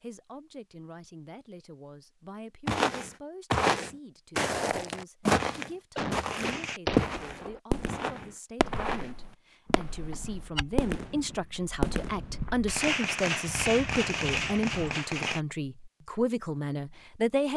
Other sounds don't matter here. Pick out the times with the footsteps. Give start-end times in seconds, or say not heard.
2.6-12.7.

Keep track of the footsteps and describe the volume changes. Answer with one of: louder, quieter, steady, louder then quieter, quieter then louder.
quieter.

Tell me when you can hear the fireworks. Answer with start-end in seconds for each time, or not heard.
6.3-15.4.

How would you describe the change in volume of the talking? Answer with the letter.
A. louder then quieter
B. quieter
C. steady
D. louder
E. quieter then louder
D.